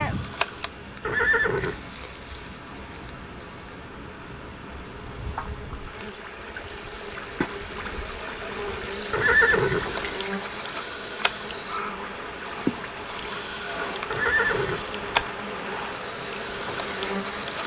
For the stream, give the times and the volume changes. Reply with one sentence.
The stream can be heard from 0.1 to 17.6 s, getting louder.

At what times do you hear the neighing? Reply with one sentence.
You can hear the neighing from 1.1 to 1.9 s, from 9.1 to 10.1 s and from 14.1 to 15.1 s.